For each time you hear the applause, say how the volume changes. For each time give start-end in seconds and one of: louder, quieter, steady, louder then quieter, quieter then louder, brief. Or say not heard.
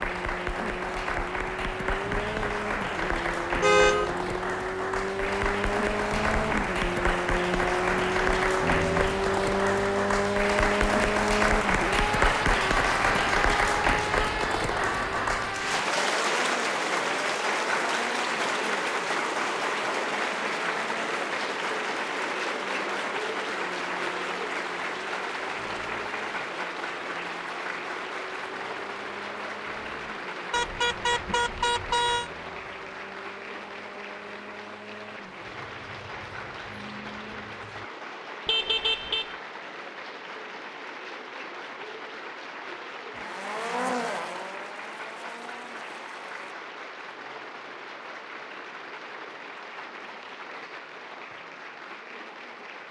0.0-52.8 quieter.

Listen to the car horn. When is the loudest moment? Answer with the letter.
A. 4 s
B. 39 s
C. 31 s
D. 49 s
A.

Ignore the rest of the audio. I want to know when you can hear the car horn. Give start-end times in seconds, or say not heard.
3.6-4.2, 30.5-32.3, 38.5-39.2.